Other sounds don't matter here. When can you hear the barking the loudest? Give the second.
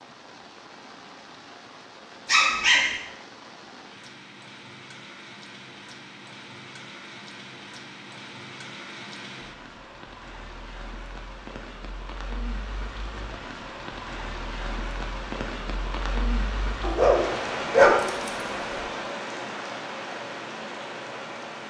18 s.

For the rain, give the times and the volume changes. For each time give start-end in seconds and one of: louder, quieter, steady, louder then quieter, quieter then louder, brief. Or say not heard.
0.0-21.6 louder.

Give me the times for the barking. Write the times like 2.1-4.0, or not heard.
2.2-2.9, 16.8-18.5.